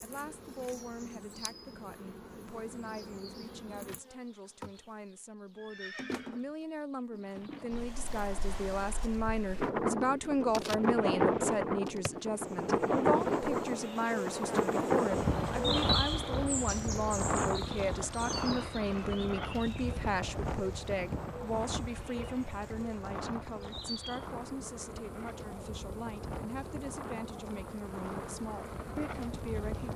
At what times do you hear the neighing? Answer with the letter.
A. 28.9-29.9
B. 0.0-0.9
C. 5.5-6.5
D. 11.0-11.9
C.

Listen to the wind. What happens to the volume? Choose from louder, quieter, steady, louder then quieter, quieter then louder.
quieter.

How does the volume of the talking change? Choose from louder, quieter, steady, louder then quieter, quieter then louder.
louder then quieter.